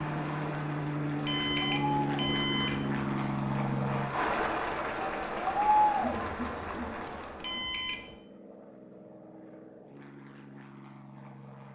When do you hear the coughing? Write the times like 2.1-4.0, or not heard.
not heard.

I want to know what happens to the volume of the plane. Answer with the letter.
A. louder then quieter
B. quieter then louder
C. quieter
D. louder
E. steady
C.